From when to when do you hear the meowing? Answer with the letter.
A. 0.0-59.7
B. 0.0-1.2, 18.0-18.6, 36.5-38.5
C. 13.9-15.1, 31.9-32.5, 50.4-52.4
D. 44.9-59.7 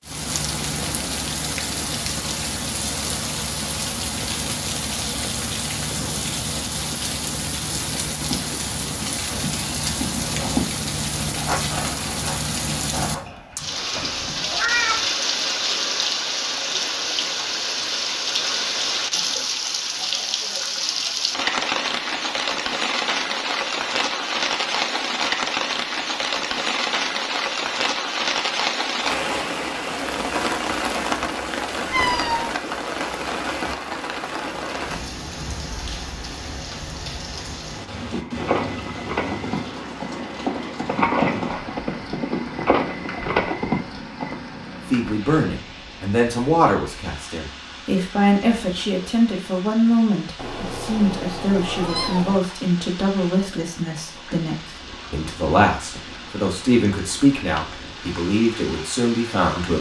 C.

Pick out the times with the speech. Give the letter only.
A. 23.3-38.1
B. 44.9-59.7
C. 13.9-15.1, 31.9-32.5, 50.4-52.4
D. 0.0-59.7
B.